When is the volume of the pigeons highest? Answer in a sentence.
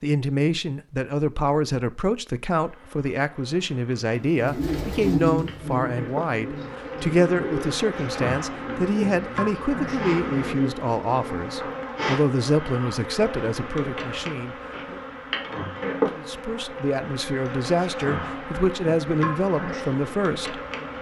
The loudest moment of the pigeons is at 5 seconds.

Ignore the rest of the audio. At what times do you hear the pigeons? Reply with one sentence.
You can hear the pigeons from 4.3 to 11.8 s.